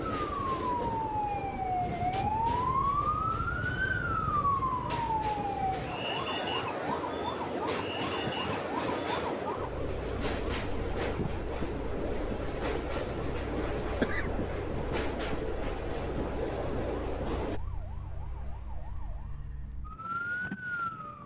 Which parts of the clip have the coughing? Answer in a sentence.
The coughing can be heard from 14.0 to 14.7 s.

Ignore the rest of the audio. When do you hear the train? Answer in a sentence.
The train can be heard from 0.0 to 17.6 s.